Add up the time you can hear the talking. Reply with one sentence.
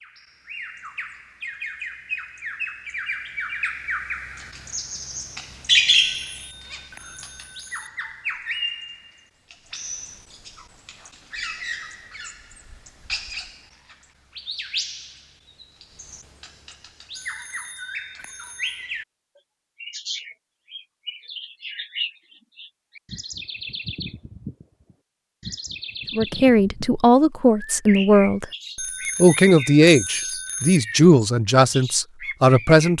You can hear the talking for 6 seconds altogether.